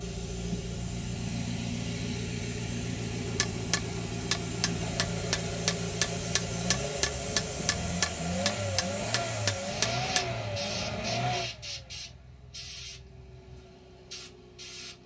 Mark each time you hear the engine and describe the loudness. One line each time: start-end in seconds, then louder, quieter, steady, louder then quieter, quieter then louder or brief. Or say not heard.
0.0-15.0 quieter.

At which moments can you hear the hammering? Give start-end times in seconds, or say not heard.
3.4-10.2.